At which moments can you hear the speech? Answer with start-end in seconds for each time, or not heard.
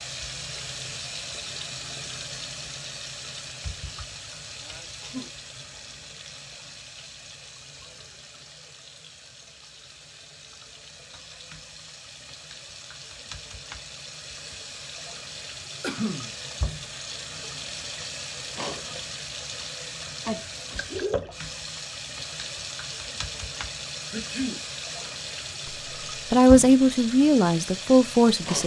25.6-28.6.